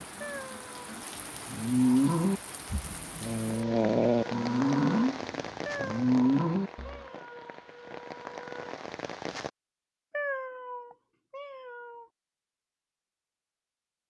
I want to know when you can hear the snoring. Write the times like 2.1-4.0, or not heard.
1.4-7.0.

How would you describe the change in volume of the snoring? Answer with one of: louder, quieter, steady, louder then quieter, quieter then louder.
quieter then louder.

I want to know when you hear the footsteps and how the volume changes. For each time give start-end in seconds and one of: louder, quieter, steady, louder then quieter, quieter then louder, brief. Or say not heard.
not heard.